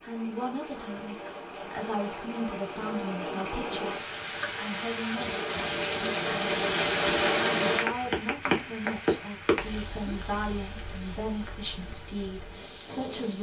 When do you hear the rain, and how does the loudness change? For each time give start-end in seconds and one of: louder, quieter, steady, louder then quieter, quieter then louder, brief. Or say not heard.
0.0-13.3 louder then quieter.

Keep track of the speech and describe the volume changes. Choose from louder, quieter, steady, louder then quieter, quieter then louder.
steady.